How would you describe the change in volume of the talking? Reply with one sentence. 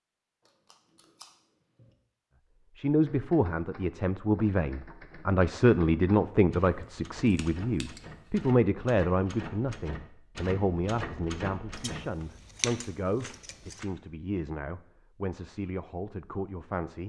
The loudness of the talking goes down.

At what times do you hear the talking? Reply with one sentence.
You can hear the talking from 2.8 to 17.0 s.